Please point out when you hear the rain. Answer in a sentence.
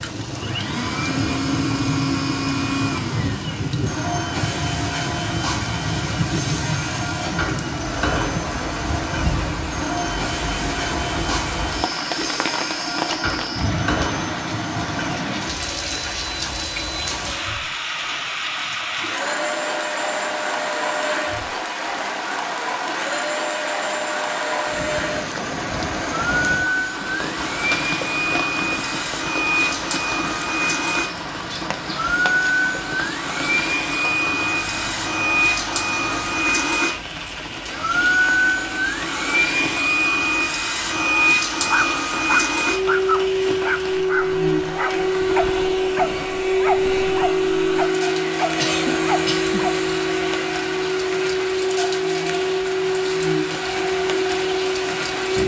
The rain can be heard from 0.0 to 55.4 s.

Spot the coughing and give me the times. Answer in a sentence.
You can hear the coughing from 48.5 to 49.7 s.